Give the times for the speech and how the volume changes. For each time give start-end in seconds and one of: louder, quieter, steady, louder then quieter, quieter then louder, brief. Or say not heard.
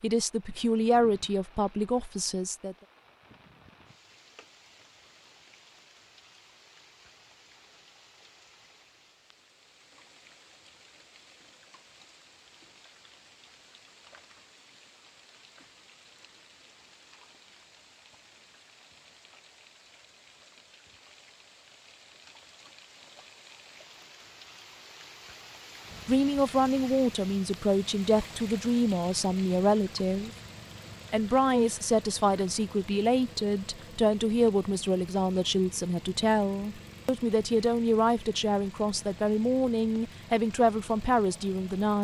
0.0-2.8 brief
26.1-30.3 steady
31.1-41.9 steady.